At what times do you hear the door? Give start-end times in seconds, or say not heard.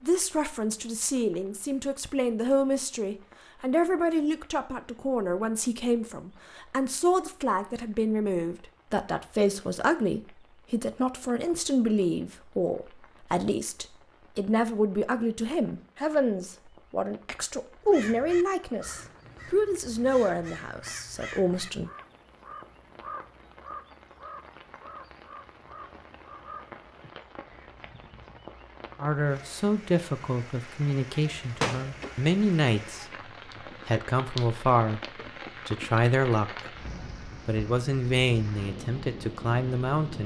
31.6-32.2.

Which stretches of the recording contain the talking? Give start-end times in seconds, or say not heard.
0.0-21.9, 29.0-33.0, 33.9-35.0, 35.6-36.5, 37.5-40.2.